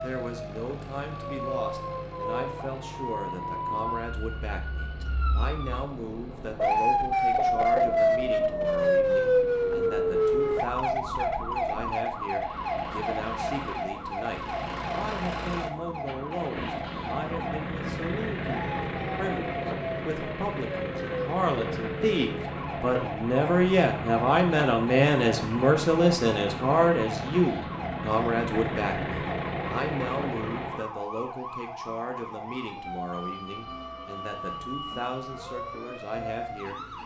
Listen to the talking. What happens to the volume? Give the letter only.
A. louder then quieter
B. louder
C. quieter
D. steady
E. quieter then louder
A.